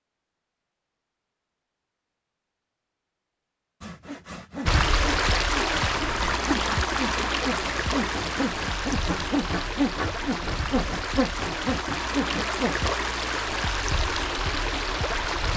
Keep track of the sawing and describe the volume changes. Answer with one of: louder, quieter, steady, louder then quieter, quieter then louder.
louder.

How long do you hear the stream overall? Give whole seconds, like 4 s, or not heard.
11 s.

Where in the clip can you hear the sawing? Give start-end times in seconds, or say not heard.
3.8-12.9.